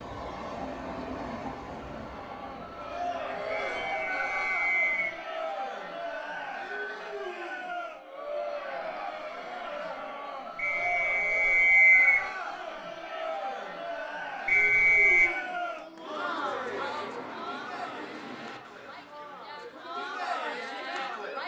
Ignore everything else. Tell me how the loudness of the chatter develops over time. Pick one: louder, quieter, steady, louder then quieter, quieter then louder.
steady.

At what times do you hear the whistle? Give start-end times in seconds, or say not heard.
3.5-5.2, 10.6-12.2, 14.4-15.3.